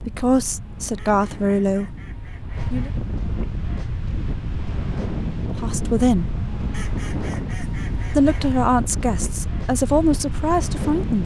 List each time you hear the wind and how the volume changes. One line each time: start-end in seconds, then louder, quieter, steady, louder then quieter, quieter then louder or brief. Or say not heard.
0.0-11.2 louder.